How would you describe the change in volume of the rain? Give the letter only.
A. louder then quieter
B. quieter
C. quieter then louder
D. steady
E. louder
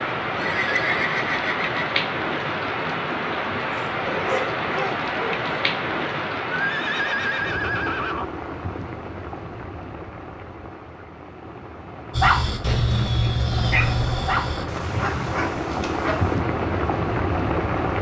C.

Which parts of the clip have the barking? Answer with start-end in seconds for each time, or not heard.
3.7-5.5, 12.1-16.4.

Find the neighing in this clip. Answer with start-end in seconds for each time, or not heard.
0.3-1.9, 6.5-8.3, 13.5-14.3.